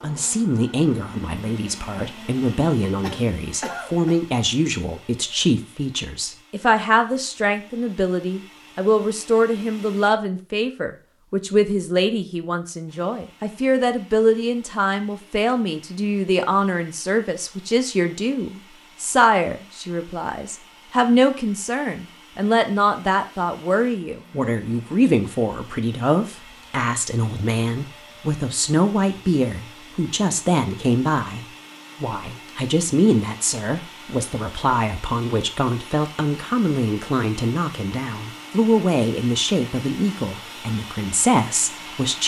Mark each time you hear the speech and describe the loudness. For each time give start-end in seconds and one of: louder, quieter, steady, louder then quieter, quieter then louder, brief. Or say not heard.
0.0-42.2 steady.